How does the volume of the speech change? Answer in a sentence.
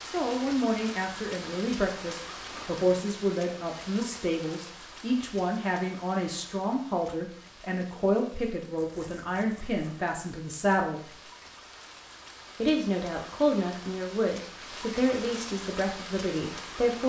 The volume of the speech stays about the same.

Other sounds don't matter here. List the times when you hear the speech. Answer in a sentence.
You can hear the speech from 0.1 to 11.2 s and from 12.6 to 17.0 s.